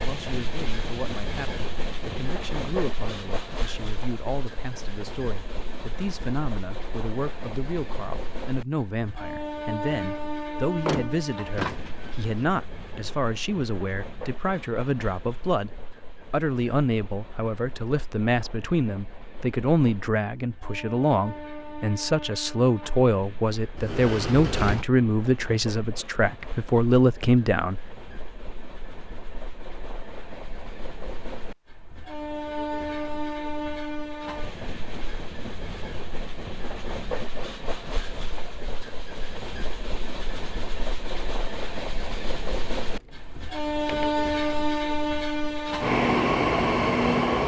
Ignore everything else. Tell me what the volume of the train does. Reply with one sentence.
The volume of the train goes down, then up.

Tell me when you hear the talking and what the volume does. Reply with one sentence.
You can hear the talking from 0.1 to 27.9 s, getting louder.